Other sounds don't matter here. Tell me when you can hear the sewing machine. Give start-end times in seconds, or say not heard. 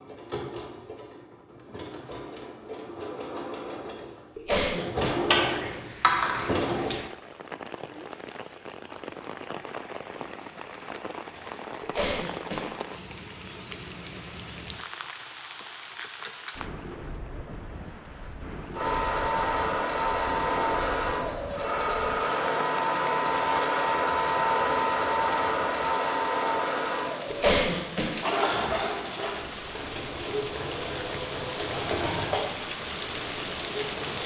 0.0-7.0, 18.7-34.2.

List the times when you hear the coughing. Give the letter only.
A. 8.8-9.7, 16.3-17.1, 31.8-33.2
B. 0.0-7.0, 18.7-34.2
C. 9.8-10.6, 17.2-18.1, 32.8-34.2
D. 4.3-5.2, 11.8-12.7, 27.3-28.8
D.